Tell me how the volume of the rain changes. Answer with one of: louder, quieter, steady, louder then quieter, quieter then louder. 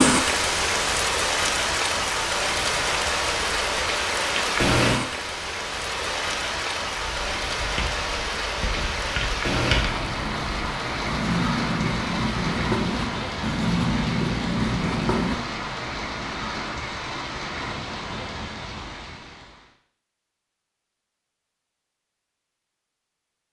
quieter.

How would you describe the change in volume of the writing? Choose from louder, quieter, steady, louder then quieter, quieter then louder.
louder.